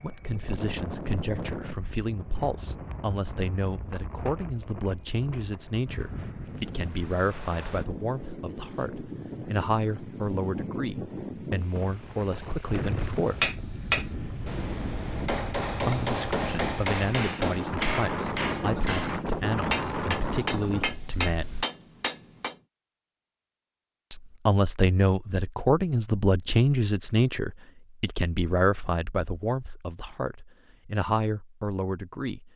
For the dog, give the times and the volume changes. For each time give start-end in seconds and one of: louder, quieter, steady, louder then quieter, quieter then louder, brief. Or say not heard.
not heard.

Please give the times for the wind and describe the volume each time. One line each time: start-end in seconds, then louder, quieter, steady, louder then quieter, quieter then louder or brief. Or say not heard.
0.0-21.6 louder.